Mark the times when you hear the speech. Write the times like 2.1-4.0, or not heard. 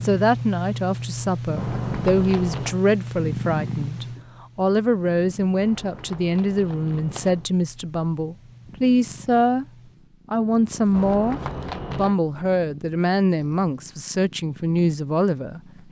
0.0-9.7, 10.3-15.6.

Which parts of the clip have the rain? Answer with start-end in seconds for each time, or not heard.
not heard.